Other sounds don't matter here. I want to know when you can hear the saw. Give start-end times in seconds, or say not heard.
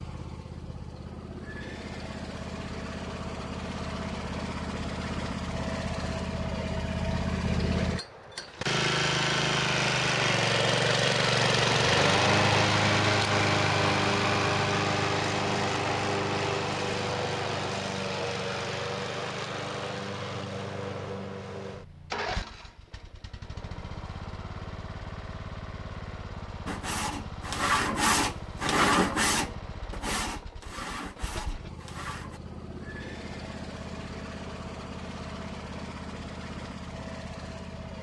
26.6-32.4.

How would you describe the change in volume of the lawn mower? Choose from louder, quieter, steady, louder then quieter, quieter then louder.
louder then quieter.